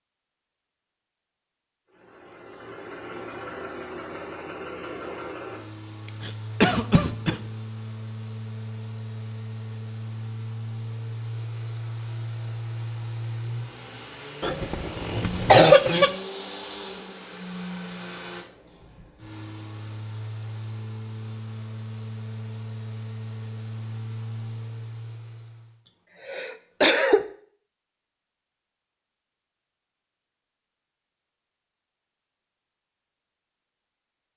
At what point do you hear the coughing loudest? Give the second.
16 s.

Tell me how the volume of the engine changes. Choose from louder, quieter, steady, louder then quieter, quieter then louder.
steady.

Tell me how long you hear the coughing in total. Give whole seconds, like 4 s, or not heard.
4 s.